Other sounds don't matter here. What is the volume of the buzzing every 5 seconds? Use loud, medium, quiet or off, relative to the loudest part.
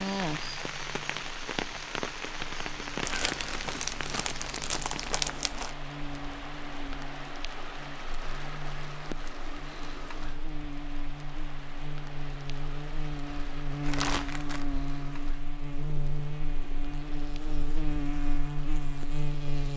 quiet, medium, loud, loud.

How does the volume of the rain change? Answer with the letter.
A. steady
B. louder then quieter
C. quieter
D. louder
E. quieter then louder
C.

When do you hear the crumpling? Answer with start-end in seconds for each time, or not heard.
3.0-5.8, 13.8-14.7.